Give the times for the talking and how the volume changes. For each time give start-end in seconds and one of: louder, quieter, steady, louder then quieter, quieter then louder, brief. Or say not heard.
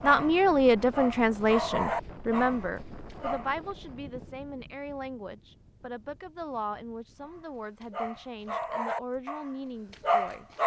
0.0-10.4 quieter.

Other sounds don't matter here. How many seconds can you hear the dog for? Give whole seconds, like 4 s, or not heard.
7 s.